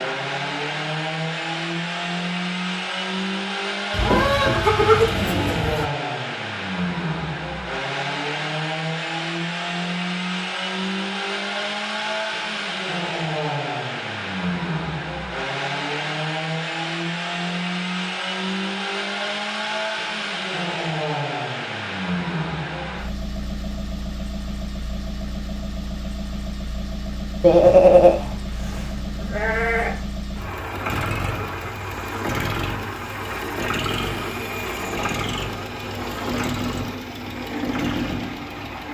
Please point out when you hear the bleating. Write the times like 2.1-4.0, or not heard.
3.9-5.9, 27.4-30.0.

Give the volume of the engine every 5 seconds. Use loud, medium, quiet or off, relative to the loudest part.
loud, loud, loud, loud, loud, medium, loud, loud.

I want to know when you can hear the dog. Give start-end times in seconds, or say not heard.
not heard.